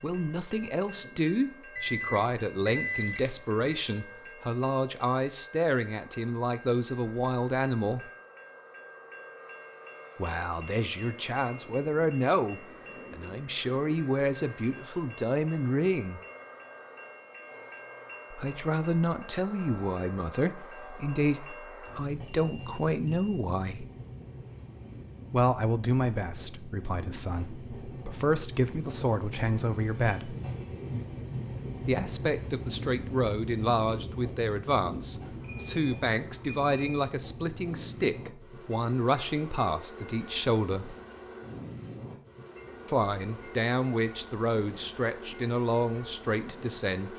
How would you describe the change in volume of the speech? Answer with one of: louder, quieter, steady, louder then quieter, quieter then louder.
steady.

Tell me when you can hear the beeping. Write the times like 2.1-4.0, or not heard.
1.8-3.8, 21.9-23.4, 35.4-37.0.